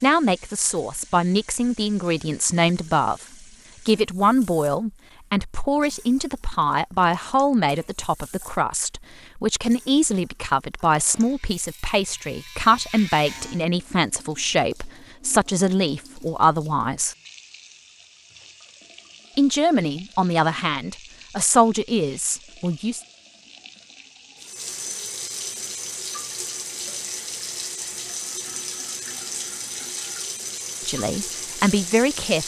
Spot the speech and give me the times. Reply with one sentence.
The speech can be heard from 0.0 to 3.2 s, from 3.9 to 17.1 s, from 19.4 to 23.0 s and from 30.9 to 32.4 s.